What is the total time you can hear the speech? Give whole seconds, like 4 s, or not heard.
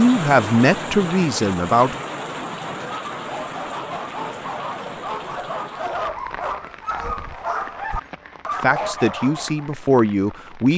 4 s.